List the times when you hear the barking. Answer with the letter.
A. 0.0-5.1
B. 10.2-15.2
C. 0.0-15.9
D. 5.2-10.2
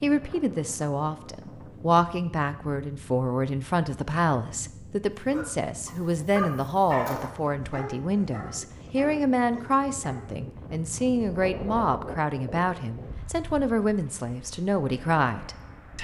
D.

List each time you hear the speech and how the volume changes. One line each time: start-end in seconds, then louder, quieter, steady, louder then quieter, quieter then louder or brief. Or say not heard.
0.0-15.9 steady.